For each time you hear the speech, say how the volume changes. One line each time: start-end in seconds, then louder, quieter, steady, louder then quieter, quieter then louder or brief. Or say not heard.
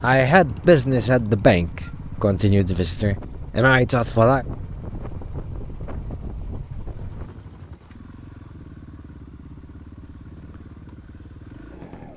0.0-4.5 quieter then louder.